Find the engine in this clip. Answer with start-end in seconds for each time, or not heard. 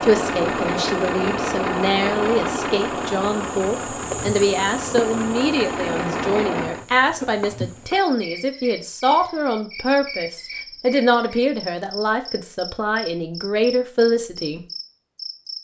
0.0-6.8.